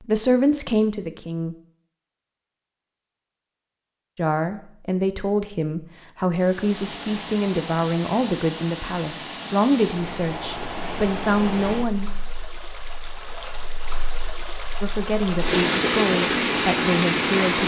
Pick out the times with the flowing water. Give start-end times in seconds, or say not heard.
6.3-17.6.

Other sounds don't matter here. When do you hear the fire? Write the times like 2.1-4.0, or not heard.
not heard.